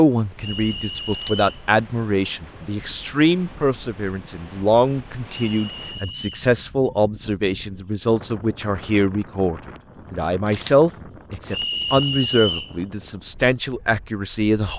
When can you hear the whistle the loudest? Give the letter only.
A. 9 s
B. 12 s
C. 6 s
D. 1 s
B.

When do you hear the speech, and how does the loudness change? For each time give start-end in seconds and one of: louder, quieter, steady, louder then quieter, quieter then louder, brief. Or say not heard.
0.0-14.7 steady.